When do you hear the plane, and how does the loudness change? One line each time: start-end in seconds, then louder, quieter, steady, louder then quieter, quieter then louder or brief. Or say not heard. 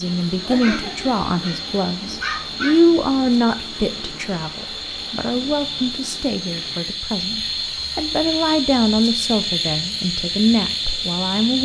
not heard.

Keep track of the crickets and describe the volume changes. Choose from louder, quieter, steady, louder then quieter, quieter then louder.
louder.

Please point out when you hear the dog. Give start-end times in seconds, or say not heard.
0.5-2.8.